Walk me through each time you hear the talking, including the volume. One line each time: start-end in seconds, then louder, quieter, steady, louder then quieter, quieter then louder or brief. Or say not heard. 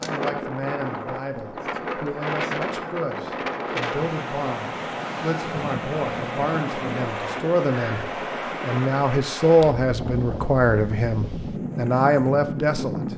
0.0-13.1 louder.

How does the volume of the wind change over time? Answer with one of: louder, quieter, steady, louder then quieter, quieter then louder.
steady.